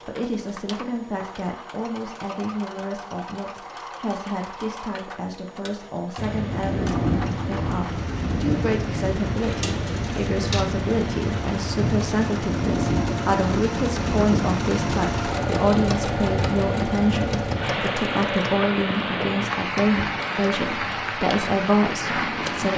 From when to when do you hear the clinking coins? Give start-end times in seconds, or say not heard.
9.4-10.7.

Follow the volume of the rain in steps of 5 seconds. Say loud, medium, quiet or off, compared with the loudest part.
off, loud, loud, loud, loud.